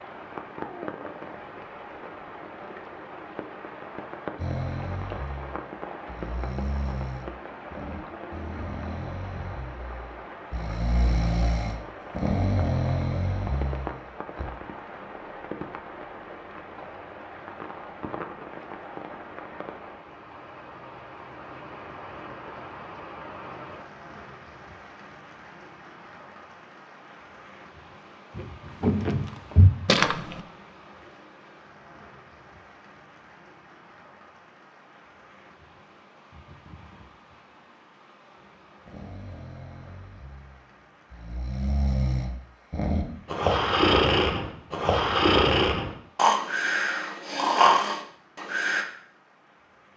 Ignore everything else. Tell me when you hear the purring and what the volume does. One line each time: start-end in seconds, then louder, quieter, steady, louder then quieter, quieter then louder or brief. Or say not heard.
not heard.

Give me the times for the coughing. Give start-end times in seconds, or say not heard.
not heard.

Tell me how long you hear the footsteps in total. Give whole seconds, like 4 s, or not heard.
2 s.